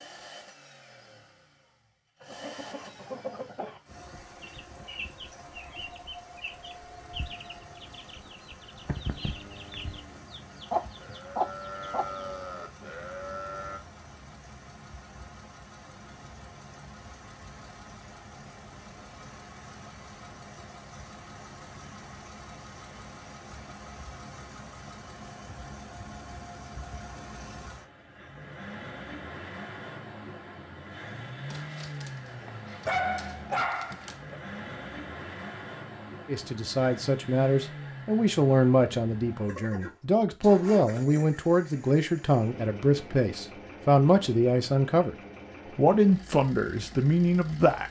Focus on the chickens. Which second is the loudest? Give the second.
11 s.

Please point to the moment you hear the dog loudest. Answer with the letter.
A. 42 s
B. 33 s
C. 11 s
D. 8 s
B.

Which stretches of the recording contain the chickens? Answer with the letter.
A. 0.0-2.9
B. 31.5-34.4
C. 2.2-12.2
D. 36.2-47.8
C.